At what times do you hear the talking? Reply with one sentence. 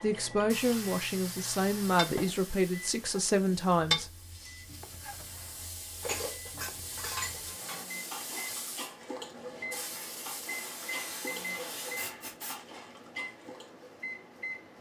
The talking can be heard from 0.0 to 4.1 s.